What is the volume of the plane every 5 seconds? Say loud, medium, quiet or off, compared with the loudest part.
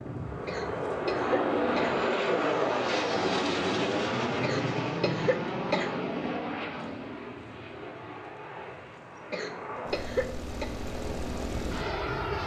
loud, medium, medium.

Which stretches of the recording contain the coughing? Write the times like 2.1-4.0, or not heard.
0.5-1.9, 4.4-5.9, 9.3-10.7.